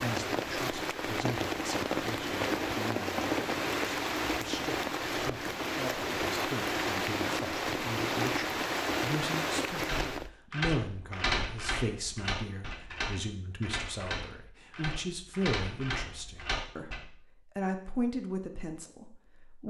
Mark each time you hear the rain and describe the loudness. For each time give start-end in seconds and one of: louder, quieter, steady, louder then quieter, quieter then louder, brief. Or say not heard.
0.0-10.3 steady.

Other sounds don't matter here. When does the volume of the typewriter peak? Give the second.
11 s.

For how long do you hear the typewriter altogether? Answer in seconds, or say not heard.
7 s.